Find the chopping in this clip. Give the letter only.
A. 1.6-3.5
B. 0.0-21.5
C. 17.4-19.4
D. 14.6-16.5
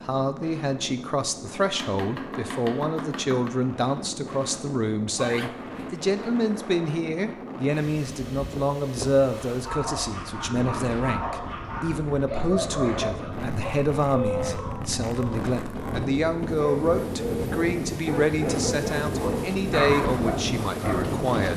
A.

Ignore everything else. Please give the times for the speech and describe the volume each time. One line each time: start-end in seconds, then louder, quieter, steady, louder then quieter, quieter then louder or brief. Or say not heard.
0.0-21.5 steady.